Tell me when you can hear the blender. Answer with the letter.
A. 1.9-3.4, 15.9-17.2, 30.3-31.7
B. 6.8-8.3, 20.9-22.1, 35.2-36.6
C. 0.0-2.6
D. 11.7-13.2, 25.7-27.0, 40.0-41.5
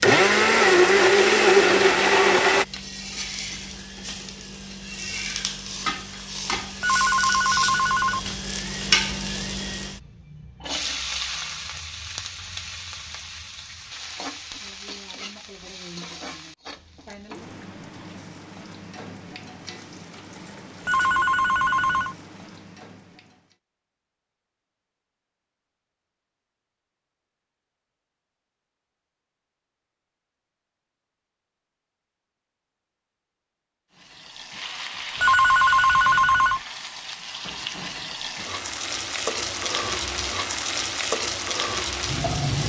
C.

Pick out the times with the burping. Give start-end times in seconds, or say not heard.
not heard.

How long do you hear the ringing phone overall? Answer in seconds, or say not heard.
4 s.